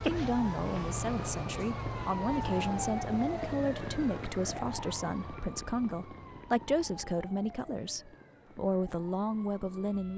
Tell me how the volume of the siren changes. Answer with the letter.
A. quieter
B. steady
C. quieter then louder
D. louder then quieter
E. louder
A.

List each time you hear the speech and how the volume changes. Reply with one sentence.
You can hear the speech from 0.0 to 10.1 s, at a steady volume.